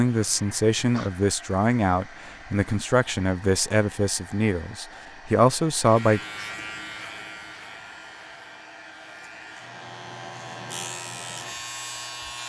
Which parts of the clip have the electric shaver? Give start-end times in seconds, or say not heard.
5.8-12.4.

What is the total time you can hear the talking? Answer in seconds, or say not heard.
6 s.